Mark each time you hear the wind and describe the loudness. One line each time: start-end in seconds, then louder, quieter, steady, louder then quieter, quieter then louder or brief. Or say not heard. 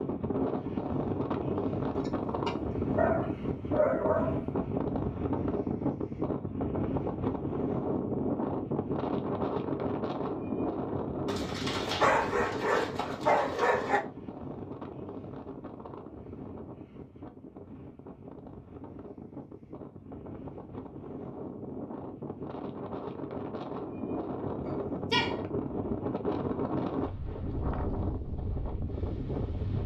0.0-29.8 quieter then louder.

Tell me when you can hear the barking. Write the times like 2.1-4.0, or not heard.
1.9-4.4, 11.2-14.0, 24.6-25.4.